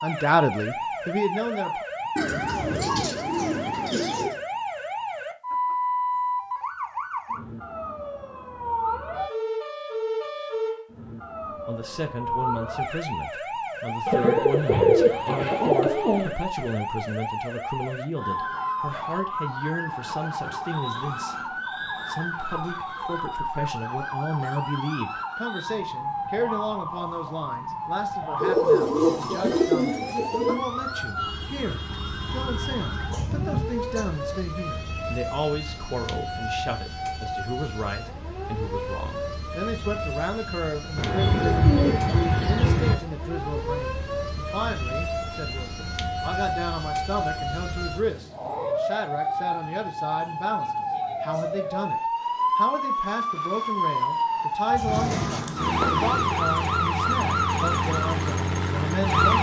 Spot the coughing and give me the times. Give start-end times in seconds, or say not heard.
2.4-4.2, 33.0-34.0, 54.6-55.4.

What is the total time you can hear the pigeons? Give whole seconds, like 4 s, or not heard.
10 s.